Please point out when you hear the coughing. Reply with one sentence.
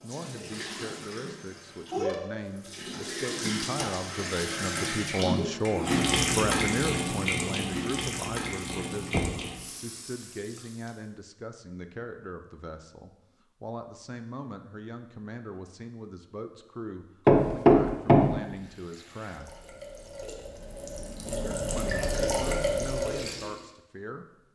You can't hear the coughing here.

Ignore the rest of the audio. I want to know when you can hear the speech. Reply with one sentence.
You can hear the speech from 0.0 to 19.8 s and from 21.2 to 24.2 s.